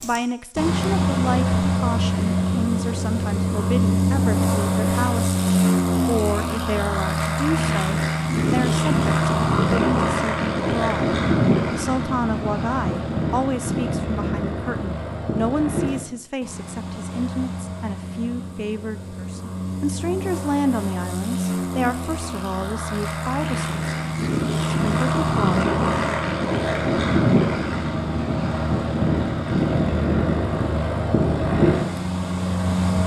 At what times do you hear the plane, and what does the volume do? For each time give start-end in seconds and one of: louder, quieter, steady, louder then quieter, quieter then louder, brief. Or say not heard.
0.0-33.0 quieter then louder.